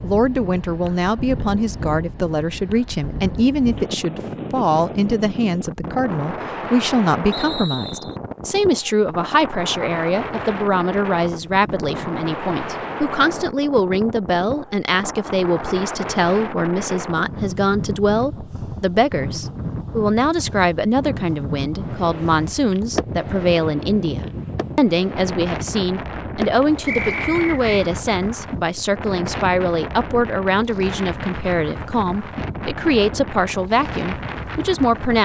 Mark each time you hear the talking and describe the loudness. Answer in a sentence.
You can hear the talking from 0.0 to 35.2 s, at a steady volume.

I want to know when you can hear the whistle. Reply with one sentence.
You can hear the whistle from 7.3 to 8.2 s and from 26.9 to 27.9 s.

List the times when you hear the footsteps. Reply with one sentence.
You can't hear the footsteps here.